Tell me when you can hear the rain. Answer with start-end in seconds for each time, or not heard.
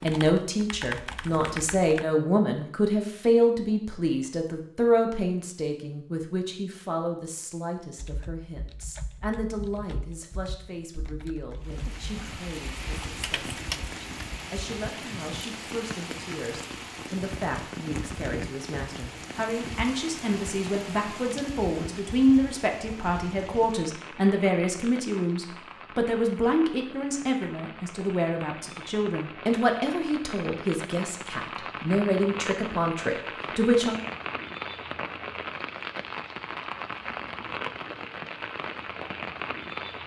11.6-40.0.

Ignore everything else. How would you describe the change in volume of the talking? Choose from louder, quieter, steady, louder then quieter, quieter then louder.
quieter then louder.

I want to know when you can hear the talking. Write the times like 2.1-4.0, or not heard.
0.0-34.0.